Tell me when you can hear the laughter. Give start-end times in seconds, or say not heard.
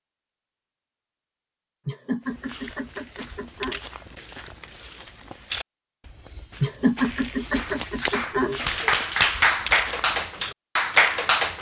1.9-3.8, 6.6-8.6.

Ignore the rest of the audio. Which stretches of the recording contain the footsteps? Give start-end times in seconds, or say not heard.
2.2-10.3.